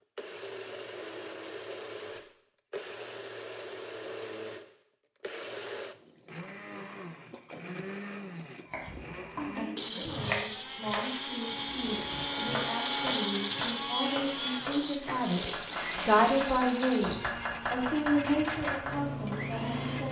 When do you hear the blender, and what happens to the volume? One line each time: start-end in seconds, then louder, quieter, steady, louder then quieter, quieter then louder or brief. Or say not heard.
0.1-20.0 louder then quieter.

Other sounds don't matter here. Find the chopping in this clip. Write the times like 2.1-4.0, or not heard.
8.7-19.6.